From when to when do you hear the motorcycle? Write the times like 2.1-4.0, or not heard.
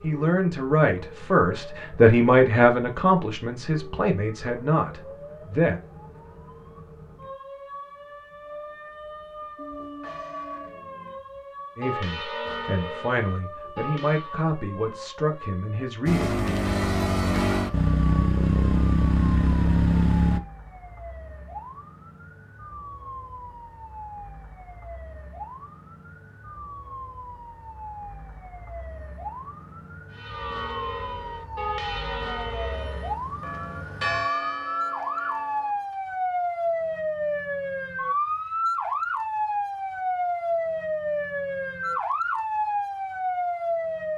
16.1-20.4.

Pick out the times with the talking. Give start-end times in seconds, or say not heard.
0.0-5.8, 11.8-16.4.